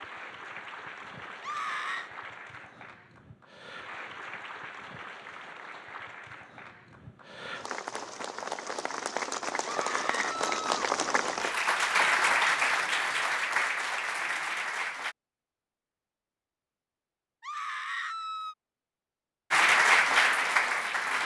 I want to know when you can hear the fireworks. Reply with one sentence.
The fireworks can't be heard in this clip.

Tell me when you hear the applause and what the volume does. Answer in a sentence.
You can hear the applause from 0.0 to 15.2 s, getting louder; and briefly from 19.5 to 21.2 s.